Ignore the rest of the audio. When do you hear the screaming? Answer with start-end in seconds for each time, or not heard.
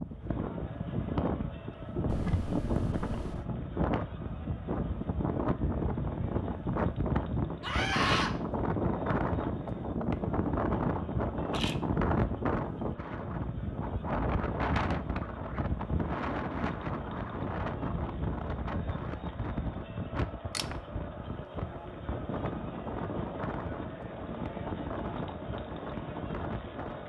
7.6-8.3.